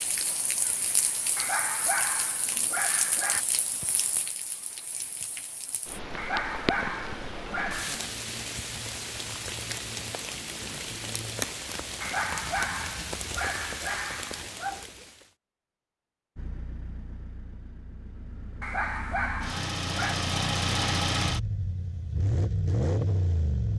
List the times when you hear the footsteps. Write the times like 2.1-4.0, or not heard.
not heard.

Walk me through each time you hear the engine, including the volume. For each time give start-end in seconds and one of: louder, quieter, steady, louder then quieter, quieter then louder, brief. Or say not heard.
16.4-23.7 louder.